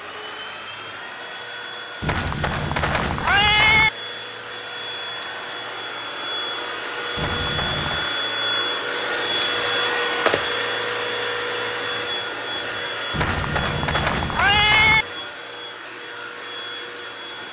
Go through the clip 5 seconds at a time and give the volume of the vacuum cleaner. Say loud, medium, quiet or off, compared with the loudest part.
medium, loud, loud, medium.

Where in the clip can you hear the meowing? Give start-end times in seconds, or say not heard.
2.0-3.9, 7.2-8.1, 13.1-15.1.